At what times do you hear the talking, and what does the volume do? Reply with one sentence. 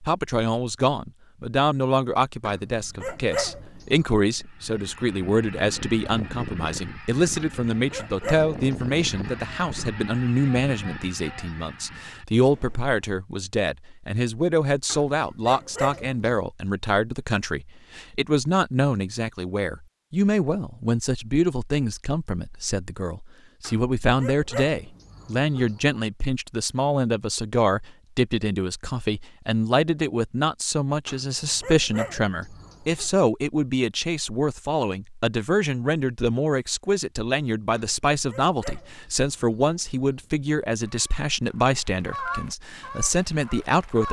You can hear the talking from 0.0 to 44.0 s, at a steady volume.